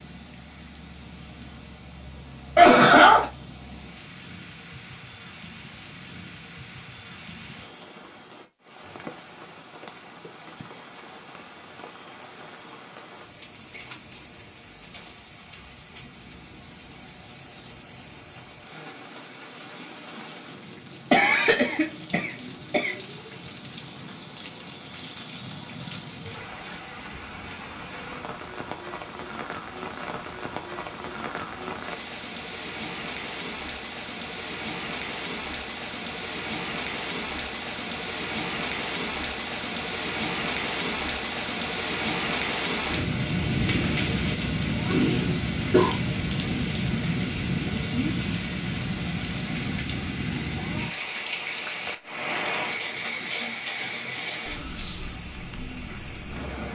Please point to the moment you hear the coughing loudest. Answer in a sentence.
The volume of the coughing peaks at 3 seconds.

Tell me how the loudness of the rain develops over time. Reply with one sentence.
The volume of the rain goes up.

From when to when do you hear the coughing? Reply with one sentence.
You can hear the coughing from 2.5 to 3.3 s, from 21.1 to 22.9 s and from 44.9 to 46.0 s.